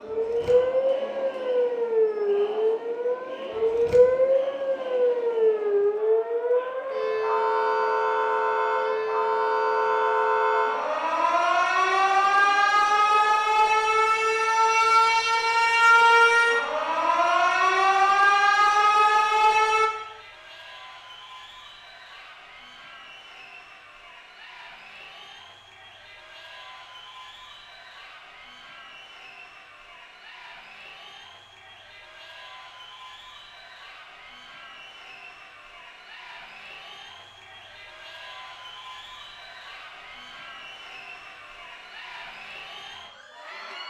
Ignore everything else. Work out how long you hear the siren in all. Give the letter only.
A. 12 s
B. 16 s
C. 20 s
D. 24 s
C.